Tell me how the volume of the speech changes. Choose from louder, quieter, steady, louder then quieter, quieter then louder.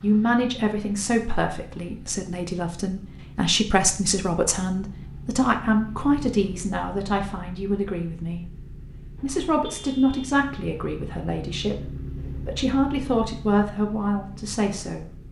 steady.